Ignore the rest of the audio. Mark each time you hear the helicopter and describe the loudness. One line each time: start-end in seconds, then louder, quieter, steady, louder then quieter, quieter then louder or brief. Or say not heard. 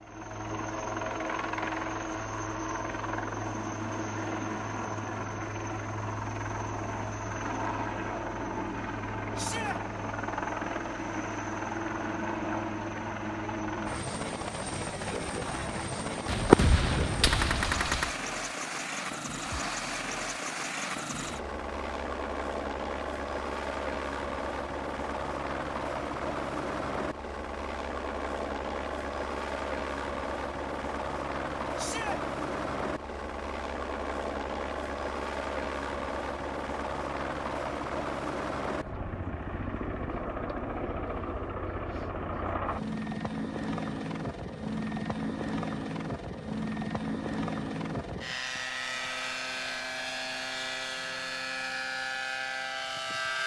0.0-53.4 steady.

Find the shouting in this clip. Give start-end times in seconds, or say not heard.
9.3-9.8, 31.8-32.2.